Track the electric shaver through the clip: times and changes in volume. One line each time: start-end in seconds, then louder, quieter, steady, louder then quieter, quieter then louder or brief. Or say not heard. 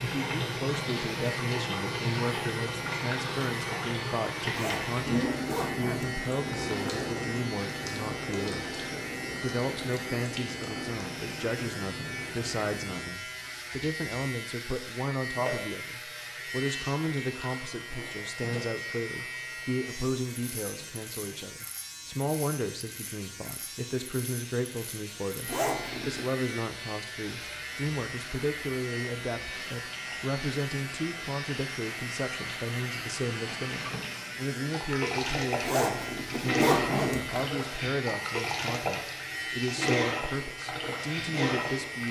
0.0-42.0 steady.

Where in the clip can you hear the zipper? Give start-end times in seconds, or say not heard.
4.5-6.2, 25.4-26.2, 35.6-37.5.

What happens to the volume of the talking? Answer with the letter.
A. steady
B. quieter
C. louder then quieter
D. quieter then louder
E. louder
A.